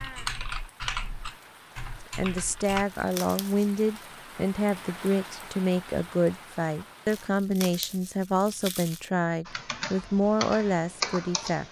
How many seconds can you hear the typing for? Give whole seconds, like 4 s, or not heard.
5 s.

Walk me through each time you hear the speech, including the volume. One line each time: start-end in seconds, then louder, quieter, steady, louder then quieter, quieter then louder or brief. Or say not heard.
2.1-11.6 steady.